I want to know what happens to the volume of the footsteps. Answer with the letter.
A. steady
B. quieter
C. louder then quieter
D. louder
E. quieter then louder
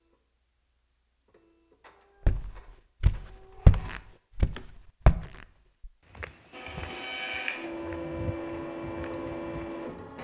B.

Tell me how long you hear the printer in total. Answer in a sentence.
The printer can be heard for 8 seconds in total.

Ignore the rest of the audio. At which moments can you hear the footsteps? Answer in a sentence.
You can hear the footsteps from 2.2 to 9.7 s.